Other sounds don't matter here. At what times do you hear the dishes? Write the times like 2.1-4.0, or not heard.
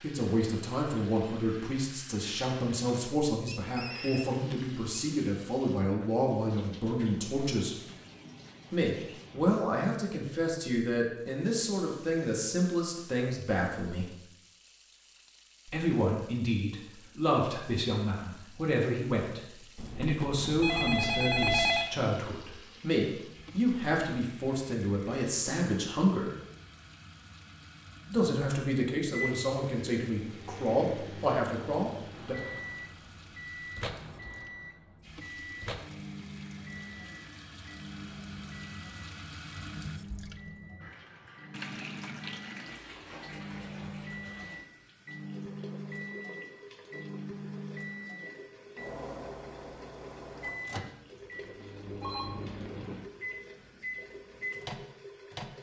not heard.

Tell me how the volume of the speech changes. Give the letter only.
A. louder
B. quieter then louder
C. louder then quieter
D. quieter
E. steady
E.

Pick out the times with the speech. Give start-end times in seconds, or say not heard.
0.0-7.8, 8.7-14.1, 15.7-26.3, 28.1-32.4.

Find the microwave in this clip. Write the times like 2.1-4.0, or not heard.
29.1-55.5.